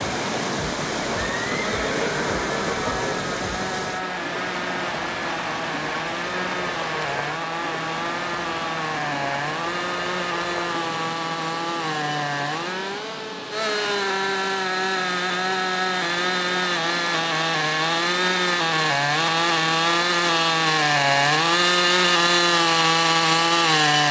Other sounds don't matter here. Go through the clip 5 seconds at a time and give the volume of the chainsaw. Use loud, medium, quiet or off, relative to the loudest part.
quiet, medium, medium, loud, loud.